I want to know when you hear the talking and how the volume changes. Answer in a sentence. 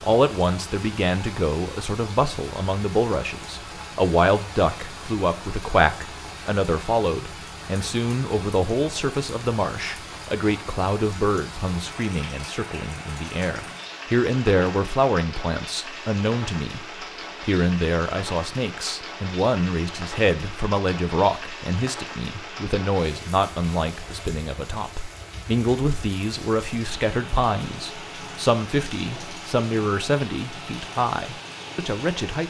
The talking can be heard from 0.0 to 32.4 s, at a steady volume.